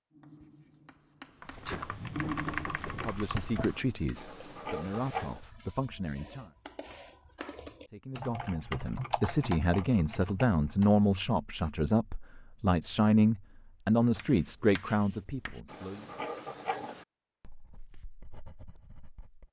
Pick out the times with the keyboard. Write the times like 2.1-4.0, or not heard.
1.4-10.9.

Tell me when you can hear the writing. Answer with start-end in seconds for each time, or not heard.
0.1-5.5, 14.2-19.4.